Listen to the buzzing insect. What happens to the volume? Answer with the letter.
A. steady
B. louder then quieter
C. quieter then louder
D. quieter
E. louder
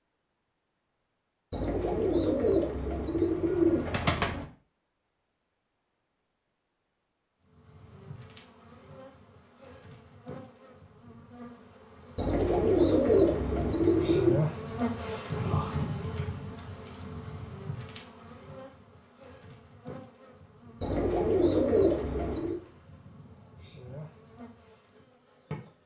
B.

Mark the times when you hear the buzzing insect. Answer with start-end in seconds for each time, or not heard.
7.4-25.8.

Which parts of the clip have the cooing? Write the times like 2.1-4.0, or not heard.
1.5-4.5, 12.2-14.4, 20.8-22.6.